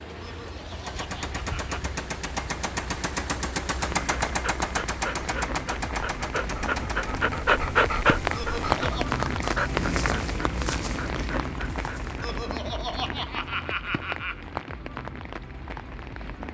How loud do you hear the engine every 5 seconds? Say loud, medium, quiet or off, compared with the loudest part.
loud, loud, off, off.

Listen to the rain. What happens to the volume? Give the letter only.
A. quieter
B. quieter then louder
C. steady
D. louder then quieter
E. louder
D.